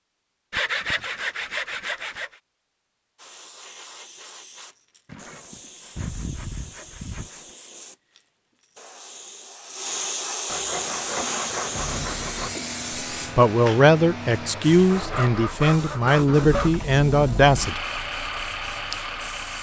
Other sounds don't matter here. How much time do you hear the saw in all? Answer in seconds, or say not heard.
8 s.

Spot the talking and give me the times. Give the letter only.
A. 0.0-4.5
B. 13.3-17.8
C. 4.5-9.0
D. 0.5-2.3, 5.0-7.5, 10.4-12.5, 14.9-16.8
B.